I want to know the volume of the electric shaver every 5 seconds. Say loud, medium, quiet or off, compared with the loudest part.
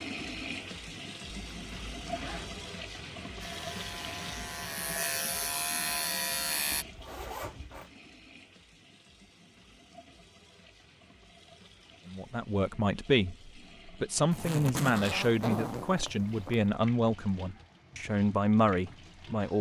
medium, loud, off, off.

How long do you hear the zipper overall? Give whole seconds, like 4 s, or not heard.
5 s.